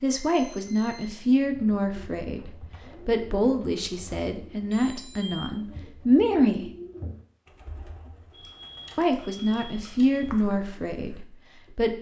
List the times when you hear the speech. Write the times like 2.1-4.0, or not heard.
0.0-6.7, 8.9-11.9.